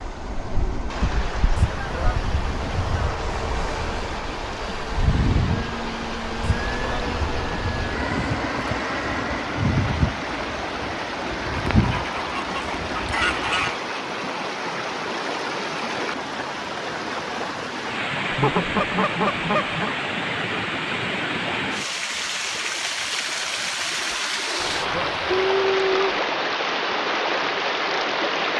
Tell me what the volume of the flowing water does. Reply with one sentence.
The volume of the flowing water goes up.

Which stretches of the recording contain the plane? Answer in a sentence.
The plane can be heard from 0.0 to 13.7 s.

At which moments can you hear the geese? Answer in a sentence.
You can hear the geese from 1.6 to 3.1 s, from 6.4 to 8.0 s, from 11.8 to 13.8 s, from 18.3 to 19.9 s and from 24.6 to 26.2 s.